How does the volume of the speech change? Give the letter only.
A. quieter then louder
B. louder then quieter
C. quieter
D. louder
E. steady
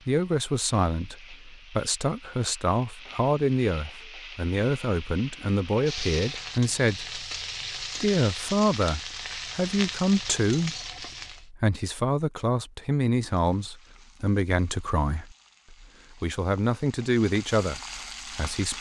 E.